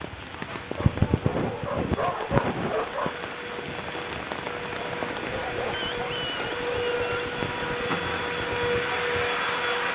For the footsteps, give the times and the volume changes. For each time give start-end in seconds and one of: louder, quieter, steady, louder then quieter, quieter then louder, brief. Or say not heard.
not heard.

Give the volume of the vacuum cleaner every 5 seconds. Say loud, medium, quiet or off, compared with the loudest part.
medium, loud.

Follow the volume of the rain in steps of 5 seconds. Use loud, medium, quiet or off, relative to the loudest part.
loud, medium.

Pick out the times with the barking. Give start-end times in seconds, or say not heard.
0.8-3.2, 5.2-7.3.